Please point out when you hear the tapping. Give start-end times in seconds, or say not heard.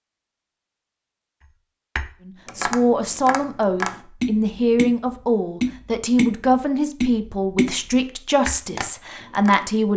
1.9-9.6.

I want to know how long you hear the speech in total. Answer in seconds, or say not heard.
8 s.